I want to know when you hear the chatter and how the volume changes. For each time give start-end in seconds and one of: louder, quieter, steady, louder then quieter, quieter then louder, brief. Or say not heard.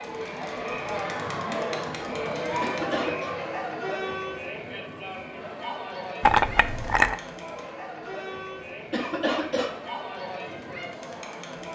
0.0-11.6 quieter.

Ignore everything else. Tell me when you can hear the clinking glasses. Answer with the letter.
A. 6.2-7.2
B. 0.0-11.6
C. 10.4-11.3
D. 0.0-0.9
A.